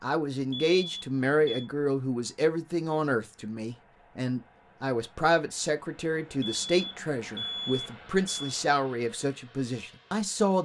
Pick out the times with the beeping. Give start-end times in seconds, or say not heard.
0.5-1.6, 6.4-8.6.